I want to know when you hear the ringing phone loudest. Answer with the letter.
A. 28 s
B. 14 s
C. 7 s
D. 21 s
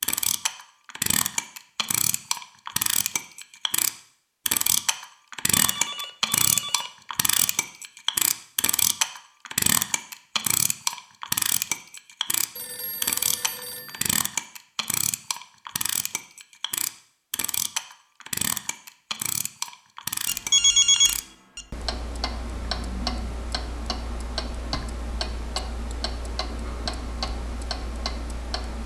D.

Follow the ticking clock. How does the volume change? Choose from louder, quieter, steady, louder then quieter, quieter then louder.
quieter.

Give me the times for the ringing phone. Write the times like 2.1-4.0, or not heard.
5.5-7.6, 12.6-14.2, 20.2-21.6.